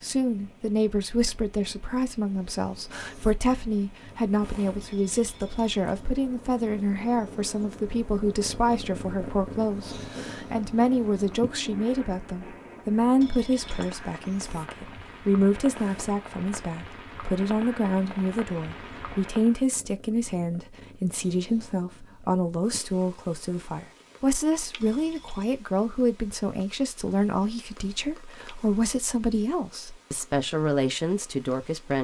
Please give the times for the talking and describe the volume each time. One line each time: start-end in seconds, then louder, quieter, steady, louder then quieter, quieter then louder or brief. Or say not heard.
0.0-31.9 steady.